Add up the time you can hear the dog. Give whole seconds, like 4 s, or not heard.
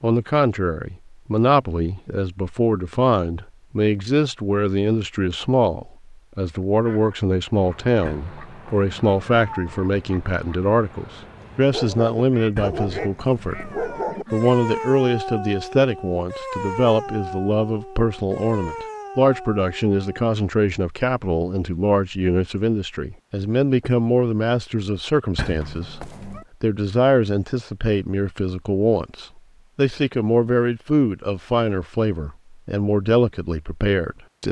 9 s.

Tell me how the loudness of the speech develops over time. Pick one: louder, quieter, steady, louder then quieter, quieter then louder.
steady.